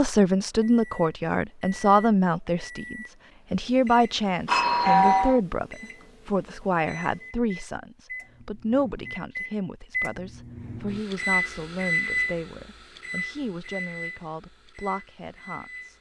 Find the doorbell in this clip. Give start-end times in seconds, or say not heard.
4.5-5.4.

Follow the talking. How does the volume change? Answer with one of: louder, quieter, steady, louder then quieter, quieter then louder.
quieter.